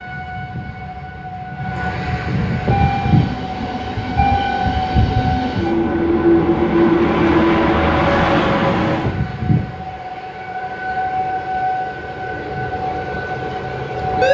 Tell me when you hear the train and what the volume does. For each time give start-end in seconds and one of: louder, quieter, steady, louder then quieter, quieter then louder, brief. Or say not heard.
2.5-9.2 louder.